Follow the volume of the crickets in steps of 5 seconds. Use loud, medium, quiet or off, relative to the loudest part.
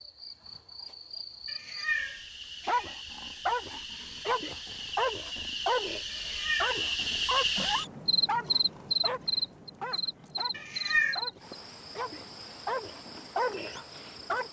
medium, loud, medium.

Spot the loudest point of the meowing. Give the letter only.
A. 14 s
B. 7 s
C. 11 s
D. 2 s
C.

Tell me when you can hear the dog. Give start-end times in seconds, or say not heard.
2.6-14.4.